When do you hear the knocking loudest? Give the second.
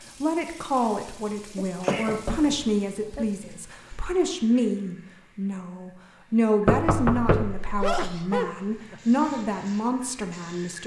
7 s.